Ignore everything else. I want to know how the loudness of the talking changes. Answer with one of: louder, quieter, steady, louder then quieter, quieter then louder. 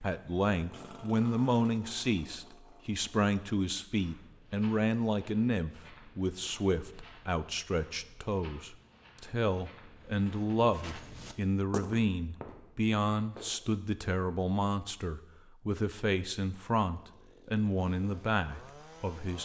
steady.